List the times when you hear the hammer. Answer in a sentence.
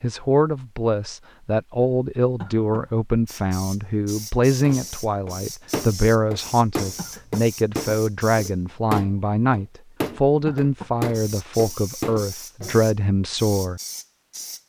You can hear the hammer from 4.6 to 12.8 s.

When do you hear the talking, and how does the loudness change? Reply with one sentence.
The talking can be heard from 0.0 to 13.8 s, at a steady volume.